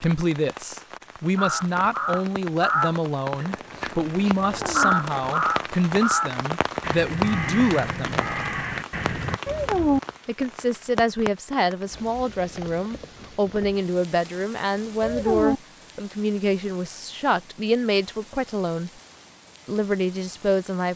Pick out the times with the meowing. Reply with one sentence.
The meowing can be heard from 4.5 to 4.9 s, from 9.4 to 10.0 s and from 15.0 to 15.6 s.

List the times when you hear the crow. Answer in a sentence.
The crow can be heard from 1.4 to 9.4 s.